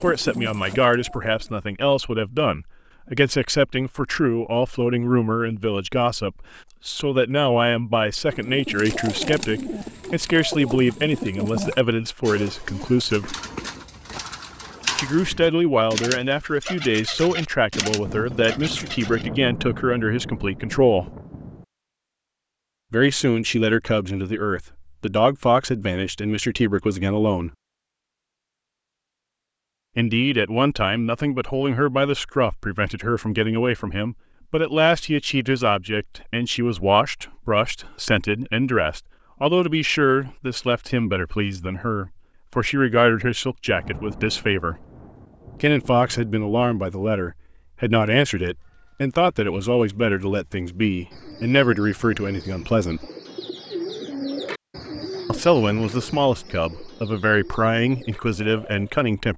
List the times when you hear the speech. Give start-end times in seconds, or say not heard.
0.0-13.3, 14.9-21.1, 22.9-27.5, 29.9-44.8, 45.6-53.0, 55.2-59.3.